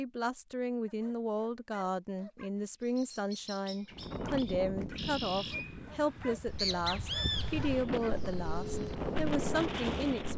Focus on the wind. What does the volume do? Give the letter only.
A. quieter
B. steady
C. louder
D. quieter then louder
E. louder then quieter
D.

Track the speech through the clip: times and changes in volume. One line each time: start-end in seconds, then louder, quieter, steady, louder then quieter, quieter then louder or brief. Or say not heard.
0.0-10.3 steady.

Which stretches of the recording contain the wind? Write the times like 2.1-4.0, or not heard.
3.9-10.3.